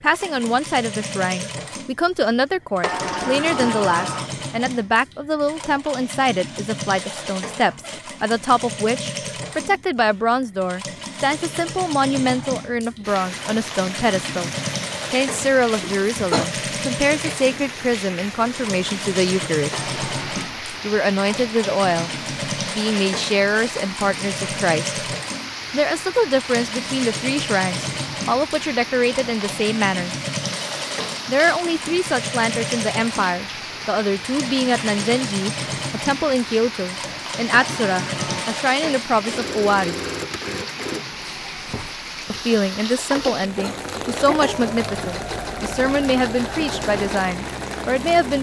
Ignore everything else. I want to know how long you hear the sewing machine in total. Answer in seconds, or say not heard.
48 s.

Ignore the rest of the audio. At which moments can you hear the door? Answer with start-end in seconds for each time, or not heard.
2.8-4.3, 19.7-20.5, 37.5-38.7.